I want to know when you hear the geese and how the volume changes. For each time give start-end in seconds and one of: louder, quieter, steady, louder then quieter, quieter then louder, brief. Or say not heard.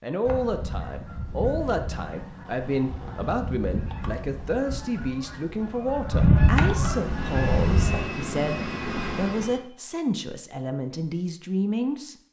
0.2-8.0 louder.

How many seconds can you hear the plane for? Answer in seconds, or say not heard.
3 s.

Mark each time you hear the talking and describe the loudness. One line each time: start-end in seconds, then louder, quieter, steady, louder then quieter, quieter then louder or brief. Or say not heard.
0.0-12.2 steady.